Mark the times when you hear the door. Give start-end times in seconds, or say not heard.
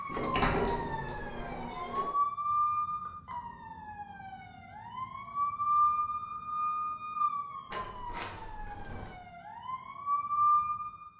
0.1-2.1, 7.7-9.2.